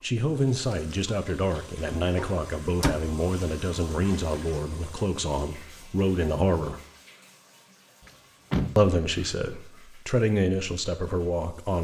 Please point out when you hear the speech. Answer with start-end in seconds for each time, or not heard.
0.0-6.8, 8.8-11.7.